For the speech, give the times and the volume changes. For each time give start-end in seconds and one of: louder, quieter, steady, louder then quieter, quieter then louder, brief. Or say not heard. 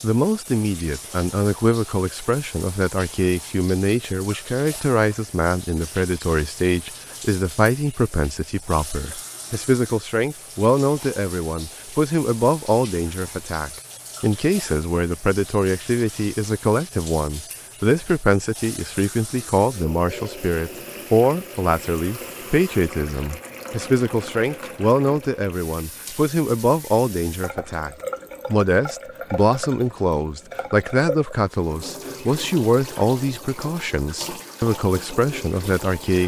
0.0-36.2 steady.